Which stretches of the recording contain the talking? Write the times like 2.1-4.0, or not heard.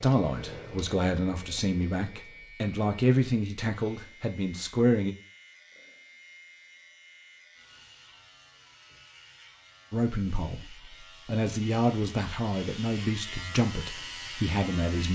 0.0-5.2, 9.9-15.0.